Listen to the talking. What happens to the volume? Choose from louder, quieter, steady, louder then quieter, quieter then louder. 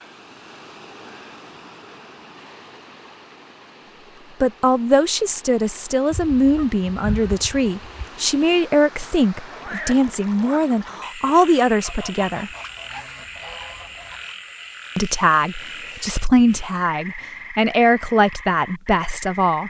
steady.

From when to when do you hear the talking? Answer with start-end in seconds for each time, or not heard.
4.4-12.5, 14.9-19.6.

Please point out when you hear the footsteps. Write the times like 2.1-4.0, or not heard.
not heard.